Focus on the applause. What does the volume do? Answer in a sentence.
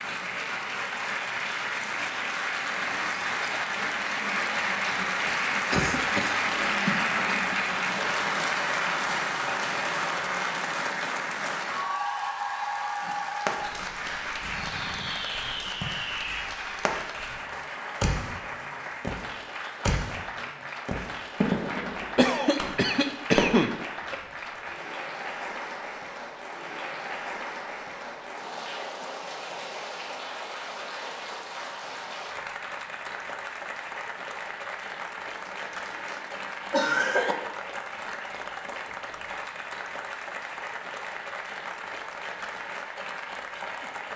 The volume of the applause goes down.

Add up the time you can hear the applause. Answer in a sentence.
The applause can be heard for 44 seconds in total.